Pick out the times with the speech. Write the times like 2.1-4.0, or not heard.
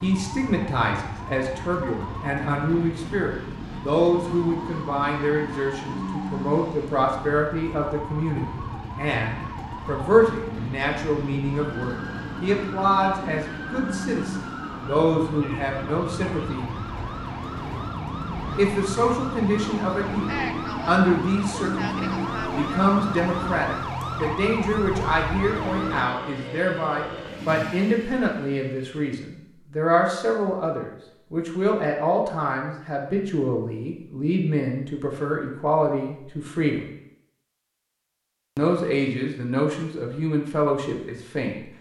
0.0-16.6, 18.6-36.9, 38.5-41.6.